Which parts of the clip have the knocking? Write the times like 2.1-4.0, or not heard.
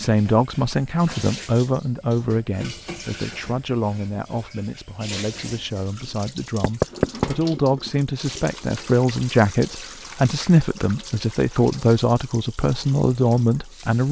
6.6-7.3.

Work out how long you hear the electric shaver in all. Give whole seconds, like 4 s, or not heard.
not heard.